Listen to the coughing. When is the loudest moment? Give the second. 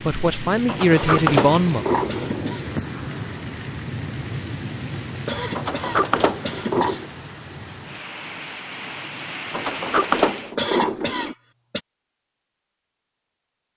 11 s.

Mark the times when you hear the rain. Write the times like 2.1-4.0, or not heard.
0.0-10.6.